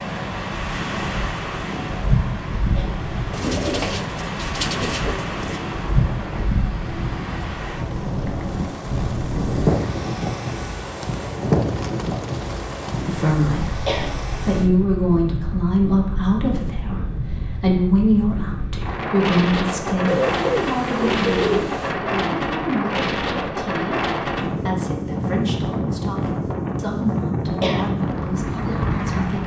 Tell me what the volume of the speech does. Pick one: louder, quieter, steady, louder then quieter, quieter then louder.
quieter.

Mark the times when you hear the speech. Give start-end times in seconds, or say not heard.
13.0-29.4.